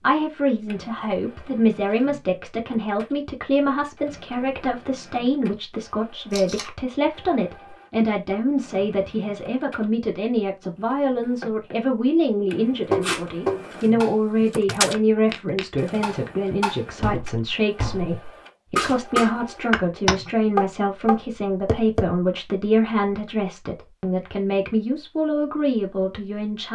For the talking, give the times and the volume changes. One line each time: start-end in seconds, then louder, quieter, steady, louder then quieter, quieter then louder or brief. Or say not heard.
0.0-26.7 steady.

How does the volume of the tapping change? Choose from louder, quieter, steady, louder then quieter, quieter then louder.
quieter then louder.